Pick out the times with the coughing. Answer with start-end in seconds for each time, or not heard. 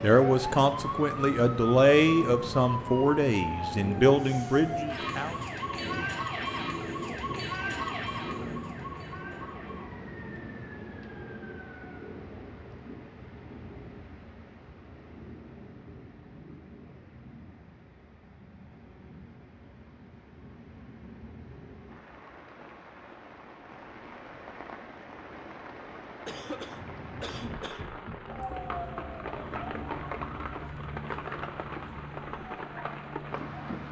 26.2-27.9.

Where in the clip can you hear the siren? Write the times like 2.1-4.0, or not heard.
0.0-12.1, 28.2-33.8.